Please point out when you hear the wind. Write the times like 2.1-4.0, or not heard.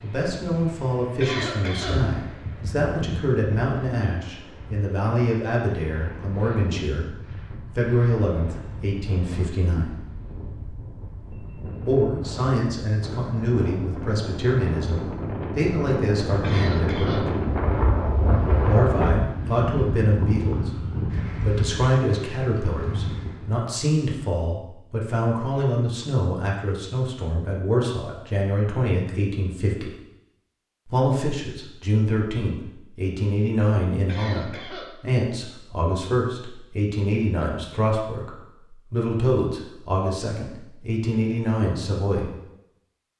0.0-23.6.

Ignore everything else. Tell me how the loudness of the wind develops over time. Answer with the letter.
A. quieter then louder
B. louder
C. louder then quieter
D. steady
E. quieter
B.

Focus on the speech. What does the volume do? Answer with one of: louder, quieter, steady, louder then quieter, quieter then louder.
steady.